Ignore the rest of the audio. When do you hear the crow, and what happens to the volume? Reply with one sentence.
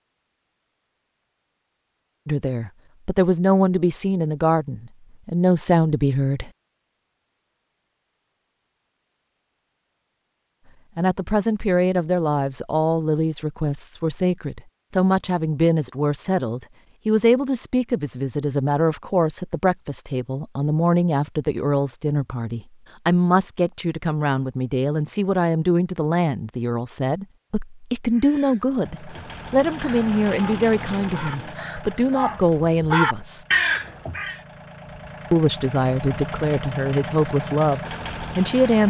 You can hear the crow from 28.1 to 34.4 s, getting louder.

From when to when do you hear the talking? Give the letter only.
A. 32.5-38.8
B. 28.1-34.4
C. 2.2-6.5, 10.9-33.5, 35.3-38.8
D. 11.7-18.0
C.